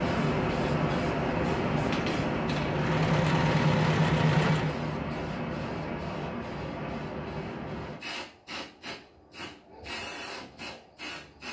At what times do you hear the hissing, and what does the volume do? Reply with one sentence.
The hissing can be heard from 0.0 to 11.4 s, getting quieter.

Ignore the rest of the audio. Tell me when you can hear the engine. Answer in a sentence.
The engine can be heard from 2.6 to 4.8 s.